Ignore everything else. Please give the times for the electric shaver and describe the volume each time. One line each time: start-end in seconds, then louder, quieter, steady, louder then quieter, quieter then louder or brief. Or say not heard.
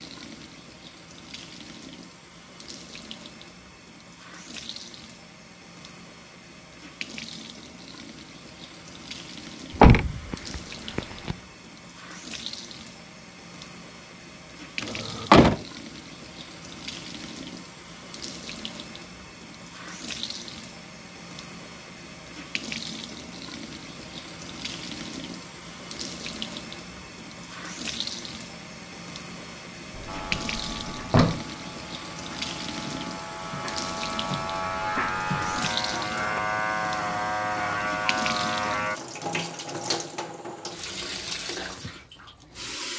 30.1-39.0 louder.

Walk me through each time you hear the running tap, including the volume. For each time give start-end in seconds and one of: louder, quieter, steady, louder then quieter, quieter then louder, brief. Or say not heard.
0.0-42.9 louder.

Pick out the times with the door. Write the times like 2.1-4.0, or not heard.
9.8-11.3, 14.8-15.6, 29.9-31.4.